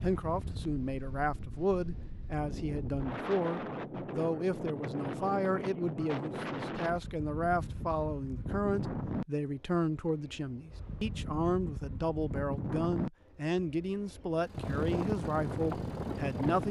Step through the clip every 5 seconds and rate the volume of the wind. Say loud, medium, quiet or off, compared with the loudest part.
medium, loud, medium, loud.